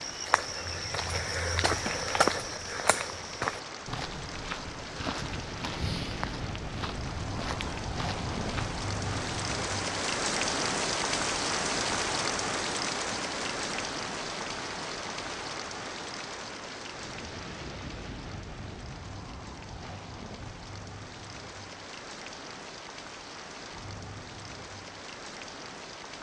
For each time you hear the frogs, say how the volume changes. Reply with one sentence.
The frogs can't be heard in this clip.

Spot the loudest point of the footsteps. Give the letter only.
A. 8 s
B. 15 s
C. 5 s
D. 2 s
D.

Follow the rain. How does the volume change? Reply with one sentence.
The volume of the rain goes up, then down.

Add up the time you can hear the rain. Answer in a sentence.
You can hear the rain for 26 seconds altogether.